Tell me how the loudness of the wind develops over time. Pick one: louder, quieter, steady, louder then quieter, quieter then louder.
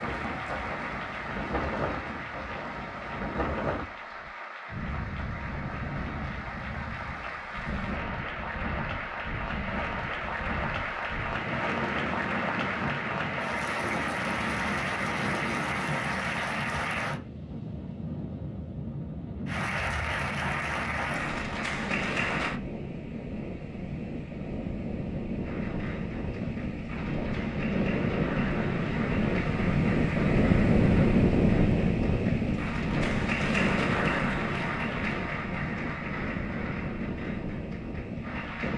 louder.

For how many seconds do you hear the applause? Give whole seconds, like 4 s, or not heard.
34 s.